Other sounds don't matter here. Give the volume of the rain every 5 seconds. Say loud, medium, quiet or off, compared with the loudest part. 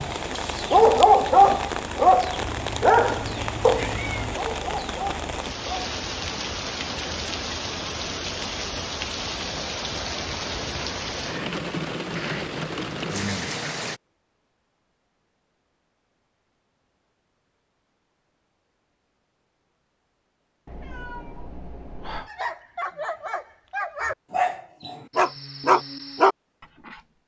loud, loud, loud, off, off, off.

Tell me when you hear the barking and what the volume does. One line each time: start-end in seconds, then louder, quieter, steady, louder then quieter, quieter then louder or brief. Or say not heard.
0.7-5.9 quieter
22.2-27.0 louder.